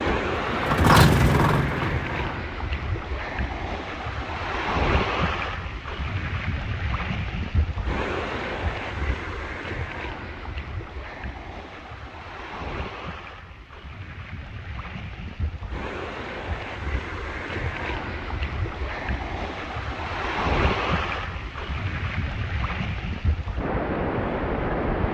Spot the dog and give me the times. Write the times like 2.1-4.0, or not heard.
not heard.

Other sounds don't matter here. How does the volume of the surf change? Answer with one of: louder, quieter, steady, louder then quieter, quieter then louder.
quieter then louder.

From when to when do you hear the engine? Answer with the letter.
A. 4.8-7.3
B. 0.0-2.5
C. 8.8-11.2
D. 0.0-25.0
B.